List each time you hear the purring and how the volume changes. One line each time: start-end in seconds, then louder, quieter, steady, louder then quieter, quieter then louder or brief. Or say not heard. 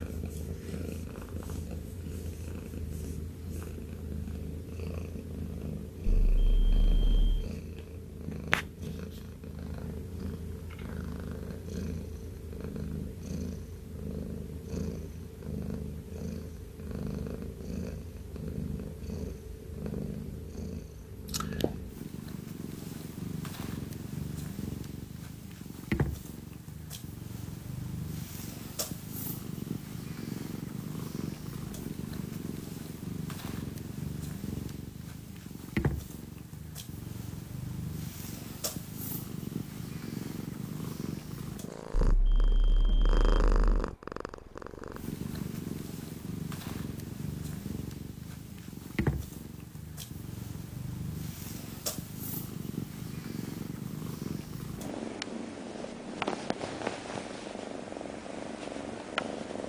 0.0-59.6 steady.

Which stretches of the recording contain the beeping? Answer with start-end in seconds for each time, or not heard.
6.0-7.5, 42.0-43.9.